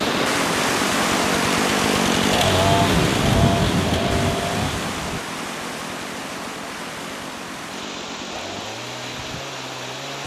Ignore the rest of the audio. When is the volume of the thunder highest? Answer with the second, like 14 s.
3 s.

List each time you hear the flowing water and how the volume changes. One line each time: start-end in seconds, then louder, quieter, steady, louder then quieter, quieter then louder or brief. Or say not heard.
0.0-10.2 quieter.